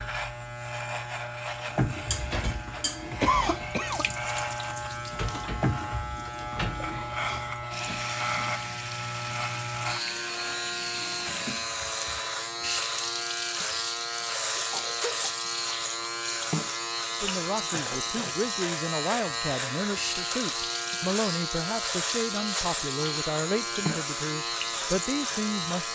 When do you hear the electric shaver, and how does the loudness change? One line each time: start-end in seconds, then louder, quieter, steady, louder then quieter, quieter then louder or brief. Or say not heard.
0.0-25.8 steady.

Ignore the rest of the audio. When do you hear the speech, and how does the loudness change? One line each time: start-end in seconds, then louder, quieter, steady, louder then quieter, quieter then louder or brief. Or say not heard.
17.2-25.8 steady.